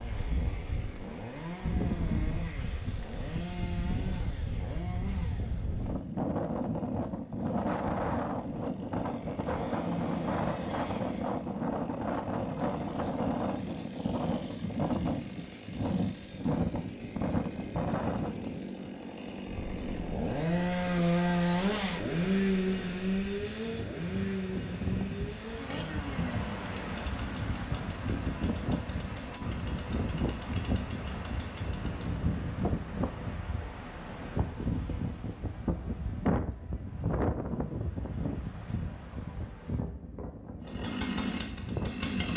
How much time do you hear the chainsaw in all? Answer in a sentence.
The chainsaw can be heard for 34 seconds in total.